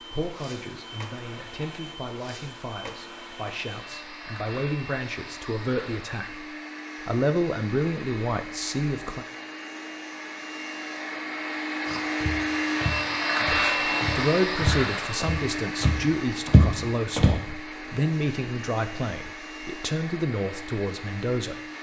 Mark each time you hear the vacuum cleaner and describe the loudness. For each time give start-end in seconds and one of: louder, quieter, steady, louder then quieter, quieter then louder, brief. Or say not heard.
0.0-21.7 louder then quieter.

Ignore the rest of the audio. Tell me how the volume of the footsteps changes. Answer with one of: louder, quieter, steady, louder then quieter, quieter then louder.
louder.